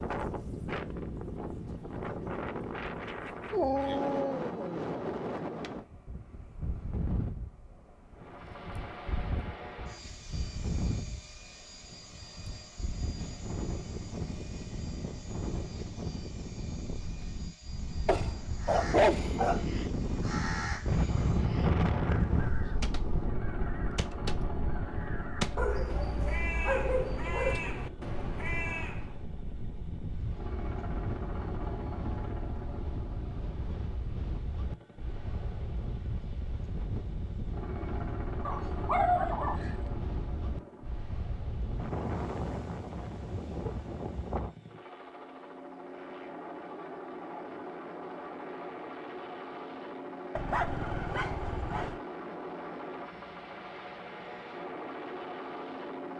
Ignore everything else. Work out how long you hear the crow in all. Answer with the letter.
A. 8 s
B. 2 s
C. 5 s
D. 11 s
D.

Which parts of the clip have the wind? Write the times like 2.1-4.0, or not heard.
0.0-44.5.